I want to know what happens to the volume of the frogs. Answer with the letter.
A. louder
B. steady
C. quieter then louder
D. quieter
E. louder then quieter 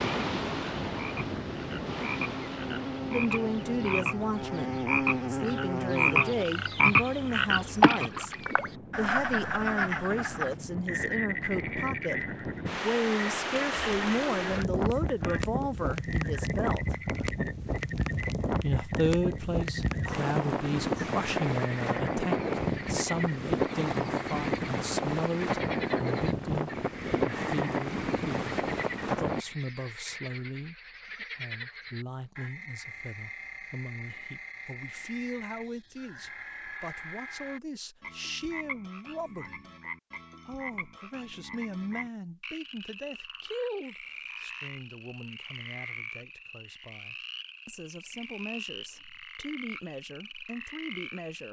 D.